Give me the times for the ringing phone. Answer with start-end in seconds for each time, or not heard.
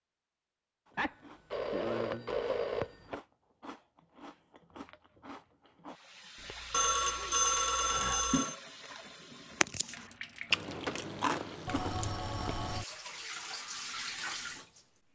0.9-3.2, 6.7-8.6, 11.7-12.8.